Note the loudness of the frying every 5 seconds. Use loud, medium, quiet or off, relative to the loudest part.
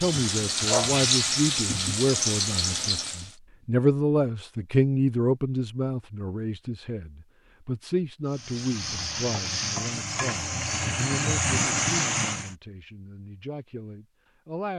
loud, medium, loud.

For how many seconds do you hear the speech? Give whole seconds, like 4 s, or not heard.
15 s.